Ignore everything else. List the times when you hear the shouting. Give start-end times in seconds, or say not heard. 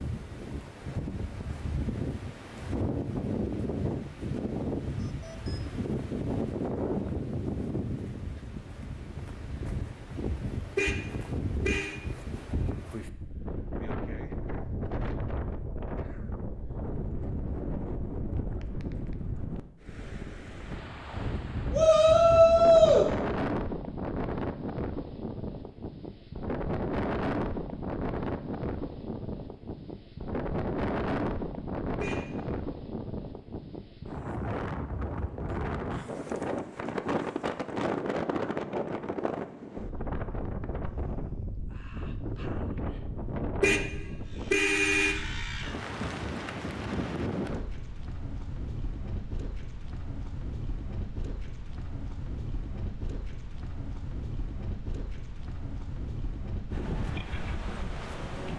21.7-23.1.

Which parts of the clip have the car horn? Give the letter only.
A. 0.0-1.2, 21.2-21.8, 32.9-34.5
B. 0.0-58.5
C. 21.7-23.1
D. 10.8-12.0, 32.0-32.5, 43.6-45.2
D.